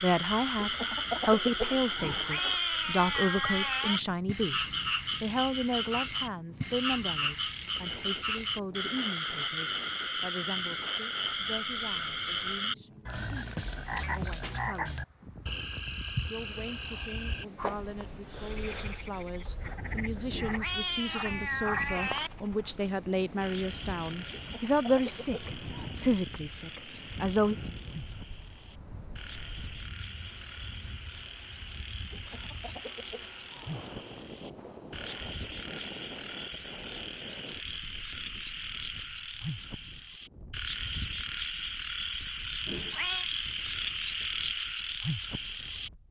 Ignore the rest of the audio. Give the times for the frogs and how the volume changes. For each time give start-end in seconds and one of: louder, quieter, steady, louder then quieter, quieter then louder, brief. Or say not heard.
0.0-45.9 quieter then louder.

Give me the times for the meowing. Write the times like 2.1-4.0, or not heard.
1.9-4.0, 20.3-22.3, 42.6-43.3.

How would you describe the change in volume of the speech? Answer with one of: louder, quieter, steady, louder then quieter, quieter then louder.
quieter then louder.